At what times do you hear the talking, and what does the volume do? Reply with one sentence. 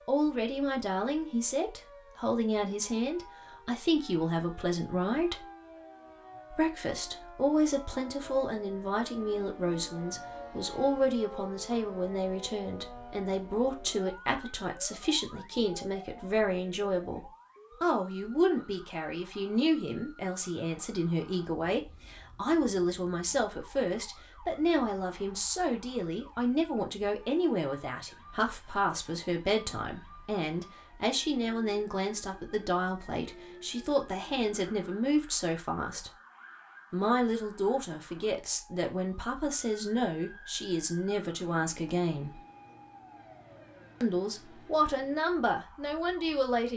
The talking can be heard from 0.1 to 5.5 s, at a steady volume; from 6.5 to 36.1 s, at a steady volume; from 36.9 to 42.4 s, at a steady volume; and briefly from 44.0 to 46.7 s.